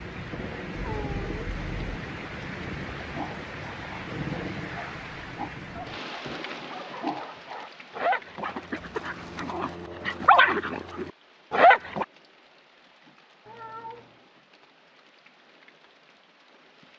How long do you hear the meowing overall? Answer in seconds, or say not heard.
3 s.